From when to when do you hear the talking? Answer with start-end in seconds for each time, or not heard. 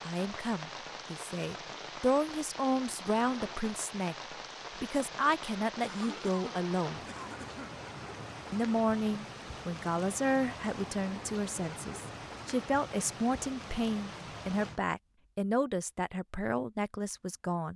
0.0-7.0, 8.5-17.7.